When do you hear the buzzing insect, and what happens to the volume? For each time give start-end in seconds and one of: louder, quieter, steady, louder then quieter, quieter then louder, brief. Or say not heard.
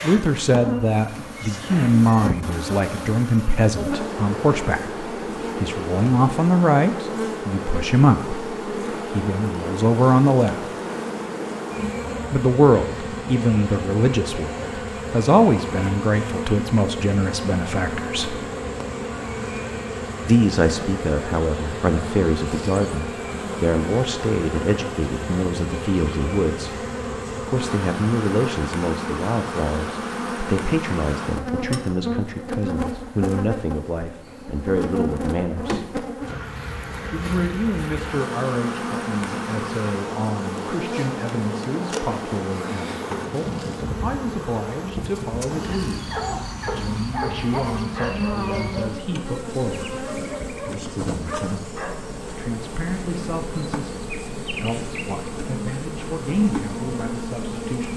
0.0-57.9 steady.